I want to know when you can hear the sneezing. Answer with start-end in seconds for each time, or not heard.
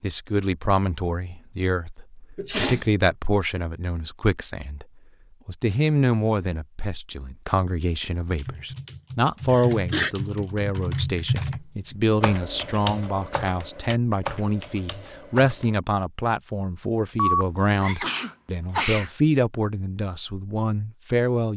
2.4-2.9, 9.5-10.1, 17.1-19.1.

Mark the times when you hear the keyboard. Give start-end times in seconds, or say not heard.
8.2-15.8.